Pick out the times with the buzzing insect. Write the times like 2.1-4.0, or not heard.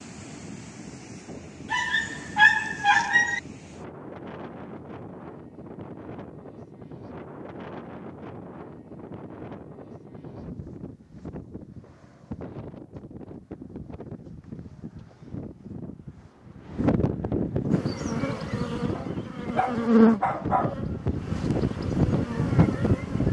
17.7-23.2.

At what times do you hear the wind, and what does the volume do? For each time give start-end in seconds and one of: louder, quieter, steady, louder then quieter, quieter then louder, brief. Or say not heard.
0.0-23.2 louder.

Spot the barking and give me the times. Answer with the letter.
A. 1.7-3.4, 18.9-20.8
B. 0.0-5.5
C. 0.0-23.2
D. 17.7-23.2
A.